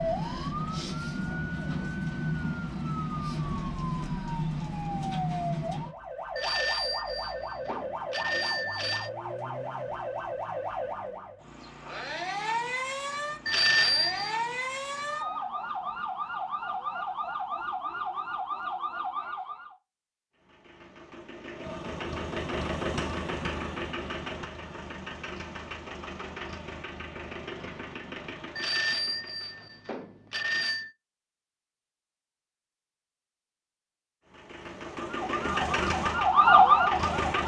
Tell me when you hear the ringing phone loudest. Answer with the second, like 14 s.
14 s.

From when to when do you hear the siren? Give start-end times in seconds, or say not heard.
0.0-19.8, 35.0-37.4.